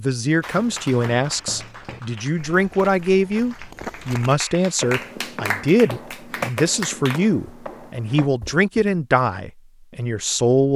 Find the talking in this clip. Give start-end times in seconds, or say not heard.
0.0-10.7.